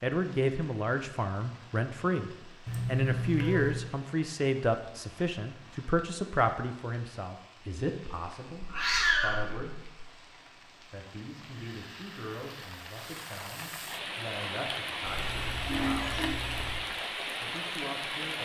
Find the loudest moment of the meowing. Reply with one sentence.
The volume of the meowing peaks at 9 seconds.